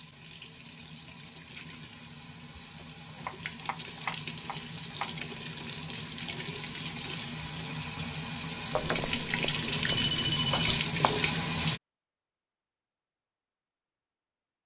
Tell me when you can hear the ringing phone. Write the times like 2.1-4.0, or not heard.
8.7-10.8.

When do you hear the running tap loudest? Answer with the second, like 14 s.
11 s.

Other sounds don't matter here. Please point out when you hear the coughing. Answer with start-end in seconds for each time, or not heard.
not heard.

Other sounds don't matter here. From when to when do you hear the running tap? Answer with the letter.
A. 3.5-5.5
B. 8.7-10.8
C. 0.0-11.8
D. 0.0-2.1
C.